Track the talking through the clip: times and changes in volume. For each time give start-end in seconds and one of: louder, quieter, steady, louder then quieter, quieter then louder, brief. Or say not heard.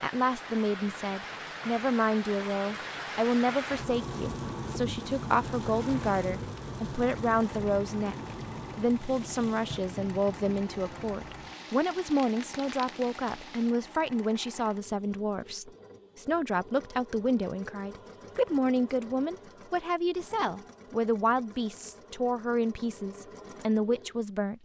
0.0-24.5 steady.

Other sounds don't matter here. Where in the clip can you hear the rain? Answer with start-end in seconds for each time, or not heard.
0.0-13.8.